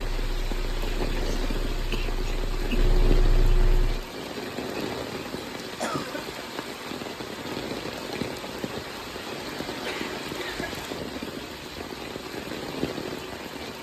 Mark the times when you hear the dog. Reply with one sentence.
The dog can't be heard in this clip.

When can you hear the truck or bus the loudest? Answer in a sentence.
The loudest moment of the truck or bus is at 3 seconds.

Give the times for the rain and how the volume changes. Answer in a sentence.
You can hear the rain from 0.0 to 13.7 s, at a steady volume.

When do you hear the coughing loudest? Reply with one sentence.
The volume of the coughing peaks at 6 seconds.